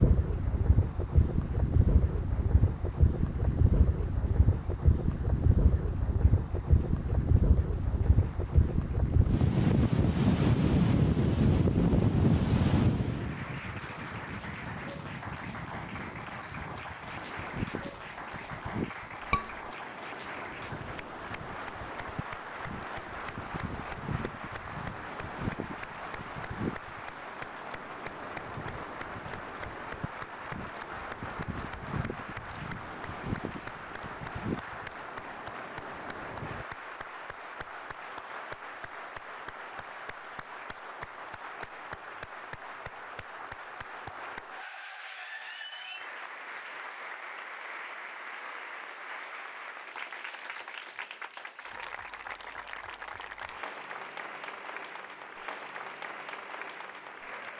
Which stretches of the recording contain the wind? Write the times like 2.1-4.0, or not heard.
0.0-36.6.